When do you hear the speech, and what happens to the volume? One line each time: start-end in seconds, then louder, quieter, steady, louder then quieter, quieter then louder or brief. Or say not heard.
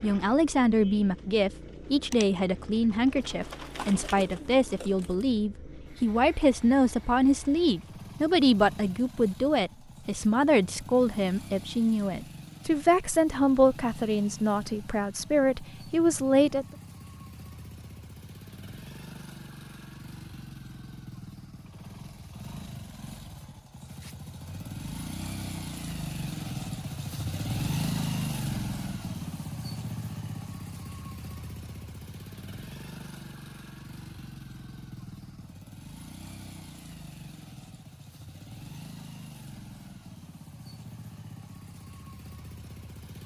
0.0-16.6 steady.